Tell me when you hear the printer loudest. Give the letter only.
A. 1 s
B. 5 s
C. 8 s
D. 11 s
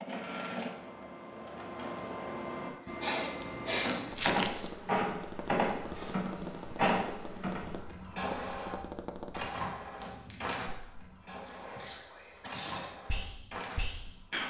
B.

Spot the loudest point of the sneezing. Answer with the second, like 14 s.
4 s.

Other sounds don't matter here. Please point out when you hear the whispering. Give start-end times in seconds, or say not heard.
11.3-14.4.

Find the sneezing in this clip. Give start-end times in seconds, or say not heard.
3.0-4.0, 12.4-12.8.